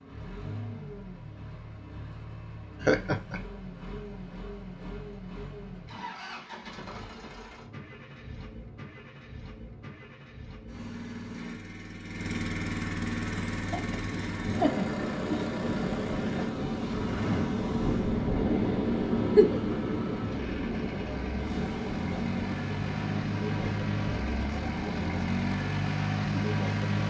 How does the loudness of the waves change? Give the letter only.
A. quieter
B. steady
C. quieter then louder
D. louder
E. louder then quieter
E.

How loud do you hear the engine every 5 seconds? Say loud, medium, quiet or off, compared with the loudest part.
quiet, quiet, medium, medium, medium, loud.